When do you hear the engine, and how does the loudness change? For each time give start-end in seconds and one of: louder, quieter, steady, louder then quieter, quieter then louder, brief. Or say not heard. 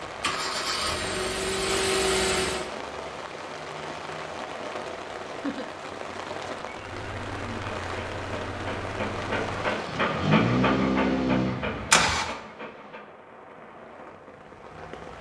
0.1-2.7 brief
6.7-12.3 louder.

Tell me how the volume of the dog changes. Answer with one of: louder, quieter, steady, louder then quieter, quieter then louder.
louder then quieter.